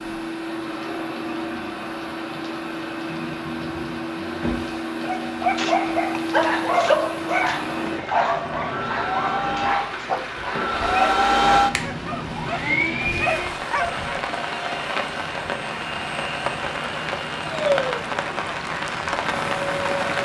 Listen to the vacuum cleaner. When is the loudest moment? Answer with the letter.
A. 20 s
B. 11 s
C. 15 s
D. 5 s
B.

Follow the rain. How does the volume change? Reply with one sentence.
The loudness of the rain goes up.